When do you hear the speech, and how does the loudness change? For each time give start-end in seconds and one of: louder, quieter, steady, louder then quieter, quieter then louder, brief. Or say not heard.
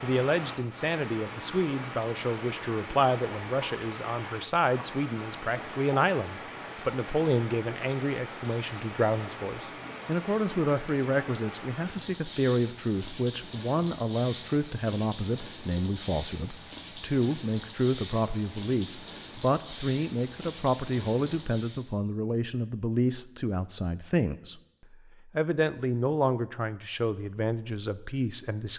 0.0-28.7 steady.